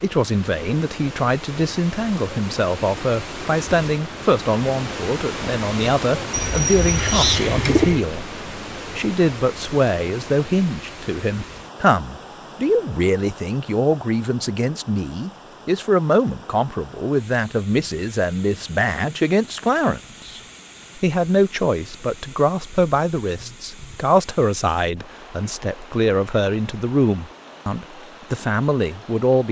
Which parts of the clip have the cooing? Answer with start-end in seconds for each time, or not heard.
6.3-8.1.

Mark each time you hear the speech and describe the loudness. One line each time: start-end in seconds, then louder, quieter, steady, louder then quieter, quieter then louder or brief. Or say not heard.
0.0-29.4 steady.